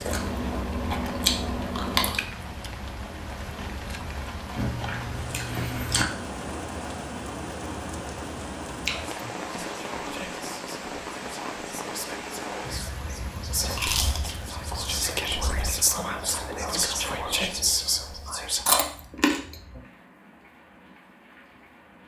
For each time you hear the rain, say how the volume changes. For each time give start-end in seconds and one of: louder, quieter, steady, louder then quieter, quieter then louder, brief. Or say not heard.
0.0-22.0 quieter.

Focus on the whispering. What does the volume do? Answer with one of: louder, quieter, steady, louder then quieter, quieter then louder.
louder.